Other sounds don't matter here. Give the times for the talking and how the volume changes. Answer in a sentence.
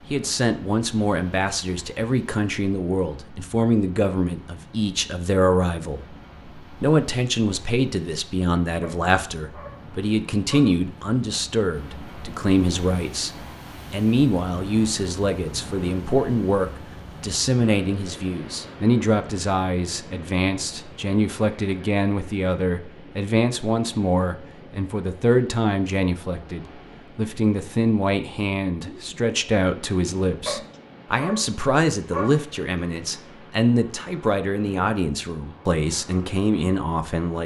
You can hear the talking from 0.1 to 37.4 s, at a steady volume.